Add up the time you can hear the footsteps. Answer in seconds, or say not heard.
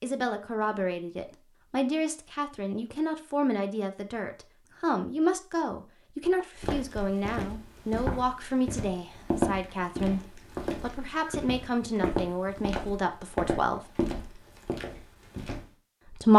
9 s.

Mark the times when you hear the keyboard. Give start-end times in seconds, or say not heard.
not heard.